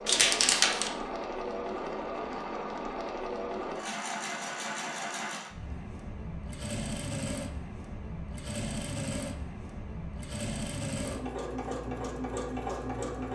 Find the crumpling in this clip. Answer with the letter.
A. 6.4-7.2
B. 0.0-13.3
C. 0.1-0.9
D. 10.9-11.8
C.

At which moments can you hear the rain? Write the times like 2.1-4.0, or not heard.
not heard.